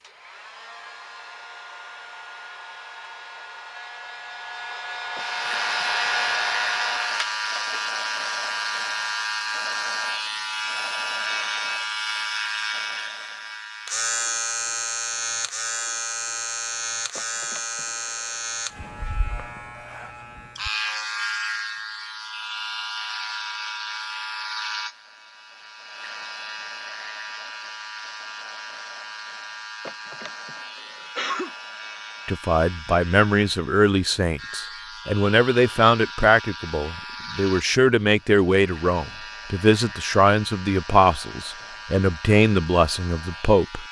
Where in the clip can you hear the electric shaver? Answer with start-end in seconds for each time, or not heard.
5.2-43.8.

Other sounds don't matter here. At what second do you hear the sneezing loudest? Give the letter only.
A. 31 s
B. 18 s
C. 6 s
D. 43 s
A.